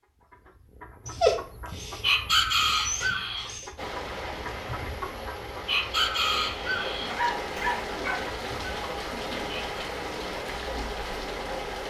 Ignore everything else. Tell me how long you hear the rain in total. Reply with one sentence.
The rain can be heard for 8 seconds in total.